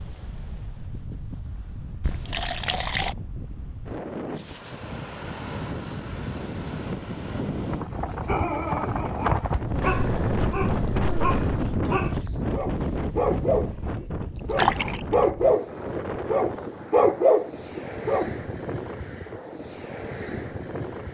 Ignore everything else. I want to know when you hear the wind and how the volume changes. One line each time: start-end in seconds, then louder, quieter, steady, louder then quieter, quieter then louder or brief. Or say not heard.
0.0-21.1 louder then quieter.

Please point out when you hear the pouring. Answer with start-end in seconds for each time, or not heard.
2.0-3.1, 9.8-11.6, 14.3-14.9.